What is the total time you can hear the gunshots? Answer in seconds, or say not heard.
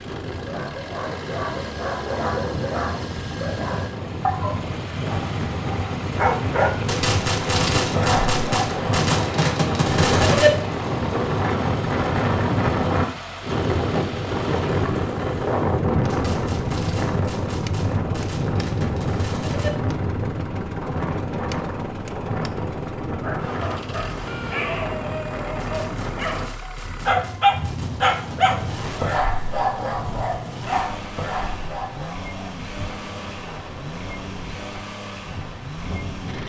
11 s.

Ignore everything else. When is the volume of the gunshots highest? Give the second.
10 s.